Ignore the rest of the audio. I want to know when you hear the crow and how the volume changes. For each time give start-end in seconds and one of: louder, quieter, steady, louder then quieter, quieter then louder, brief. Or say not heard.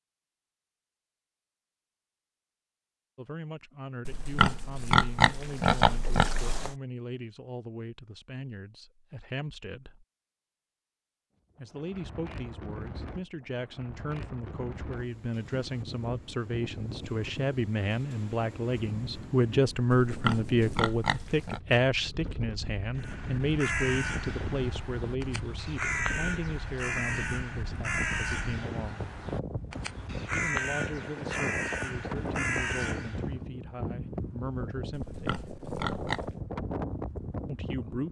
22.9-33.4 steady.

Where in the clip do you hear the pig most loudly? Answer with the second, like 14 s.
5 s.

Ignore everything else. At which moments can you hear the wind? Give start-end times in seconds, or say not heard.
11.6-38.0.